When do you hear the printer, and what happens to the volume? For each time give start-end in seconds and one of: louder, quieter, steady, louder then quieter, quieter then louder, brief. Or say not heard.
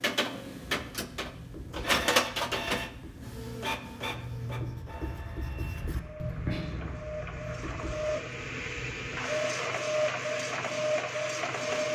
0.0-11.9 quieter then louder.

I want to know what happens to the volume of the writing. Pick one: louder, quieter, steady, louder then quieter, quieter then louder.
louder then quieter.